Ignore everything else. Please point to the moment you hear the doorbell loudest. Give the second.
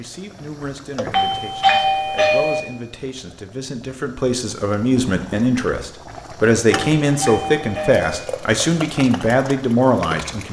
2 s.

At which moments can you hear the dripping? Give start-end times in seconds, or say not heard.
not heard.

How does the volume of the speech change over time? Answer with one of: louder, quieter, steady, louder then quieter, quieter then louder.
louder.